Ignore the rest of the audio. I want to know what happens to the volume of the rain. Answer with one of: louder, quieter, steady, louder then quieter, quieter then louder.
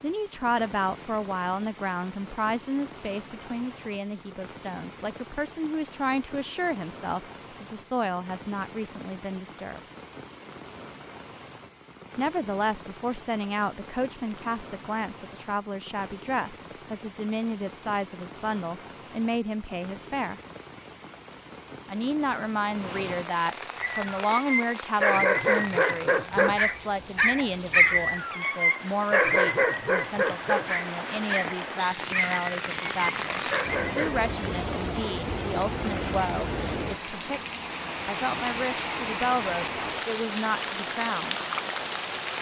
louder.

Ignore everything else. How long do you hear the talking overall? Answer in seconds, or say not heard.
37 s.